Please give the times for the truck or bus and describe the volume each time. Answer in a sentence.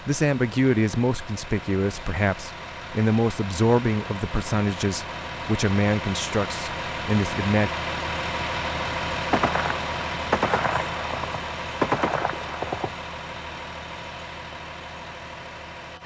You can hear the truck or bus from 0.0 to 16.0 s, getting louder then quieter.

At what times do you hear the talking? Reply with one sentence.
The talking can be heard from 0.1 to 7.7 s.